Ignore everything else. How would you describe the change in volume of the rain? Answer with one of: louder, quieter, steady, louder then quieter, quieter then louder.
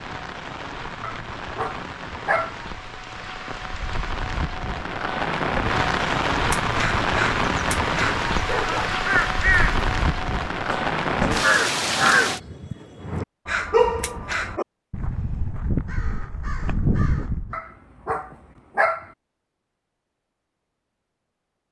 louder.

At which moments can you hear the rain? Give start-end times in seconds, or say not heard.
0.0-12.4.